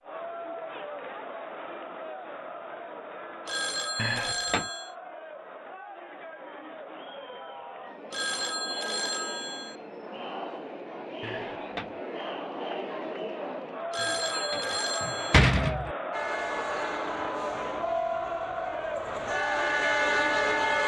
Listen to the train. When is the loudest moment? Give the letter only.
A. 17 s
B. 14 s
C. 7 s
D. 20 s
D.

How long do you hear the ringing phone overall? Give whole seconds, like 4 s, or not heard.
5 s.